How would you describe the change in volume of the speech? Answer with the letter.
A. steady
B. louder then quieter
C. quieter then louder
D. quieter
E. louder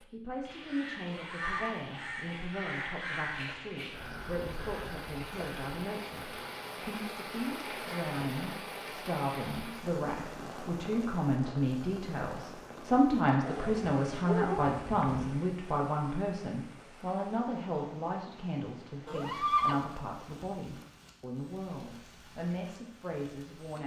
B.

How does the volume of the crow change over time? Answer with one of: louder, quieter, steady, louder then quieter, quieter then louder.
quieter.